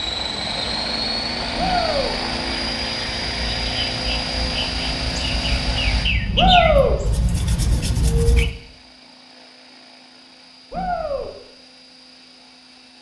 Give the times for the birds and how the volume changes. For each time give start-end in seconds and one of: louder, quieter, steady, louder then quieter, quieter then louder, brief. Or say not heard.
0.0-8.5 louder.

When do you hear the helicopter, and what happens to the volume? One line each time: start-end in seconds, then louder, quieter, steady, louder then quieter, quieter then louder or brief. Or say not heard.
0.0-12.9 quieter.